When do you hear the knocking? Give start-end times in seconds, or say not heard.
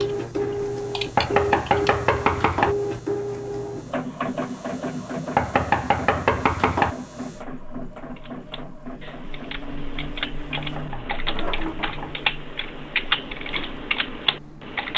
1.1-2.8, 5.3-7.0, 10.6-12.2.